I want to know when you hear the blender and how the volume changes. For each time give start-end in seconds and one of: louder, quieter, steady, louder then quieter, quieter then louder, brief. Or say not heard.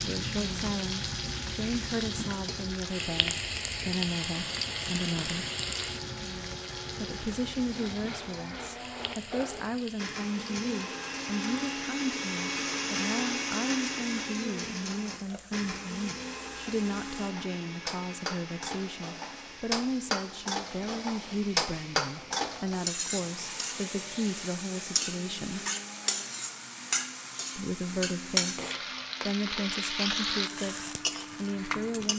0.0-32.1 louder then quieter.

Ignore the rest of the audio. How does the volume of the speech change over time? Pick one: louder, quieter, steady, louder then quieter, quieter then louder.
steady.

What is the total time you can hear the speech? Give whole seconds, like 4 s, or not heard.
29 s.